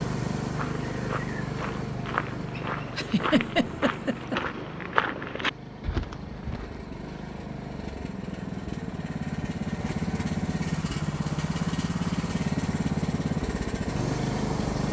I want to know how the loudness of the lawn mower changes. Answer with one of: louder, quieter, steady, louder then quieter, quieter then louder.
quieter then louder.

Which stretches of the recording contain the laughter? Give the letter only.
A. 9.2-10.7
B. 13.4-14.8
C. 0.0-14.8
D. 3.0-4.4
D.